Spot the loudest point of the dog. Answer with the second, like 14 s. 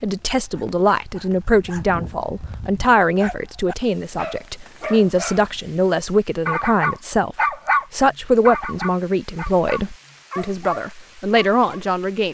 8 s.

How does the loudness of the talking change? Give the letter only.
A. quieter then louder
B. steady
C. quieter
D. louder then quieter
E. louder
B.